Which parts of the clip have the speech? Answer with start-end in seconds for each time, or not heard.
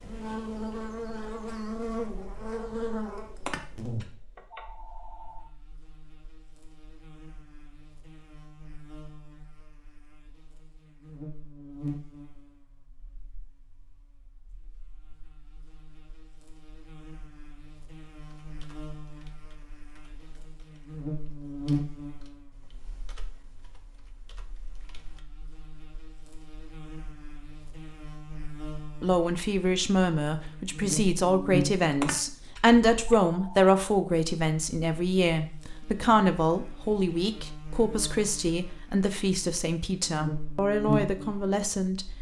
29.0-42.0.